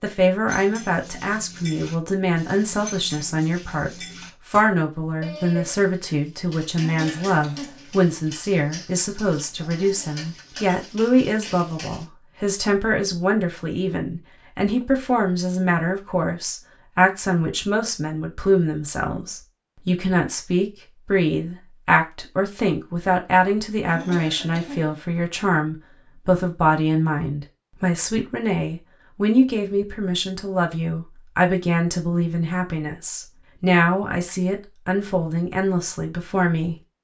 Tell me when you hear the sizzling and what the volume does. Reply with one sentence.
You can't hear the sizzling here.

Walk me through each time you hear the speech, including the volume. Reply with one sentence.
The speech can be heard from 0.0 to 36.8 s, at a steady volume.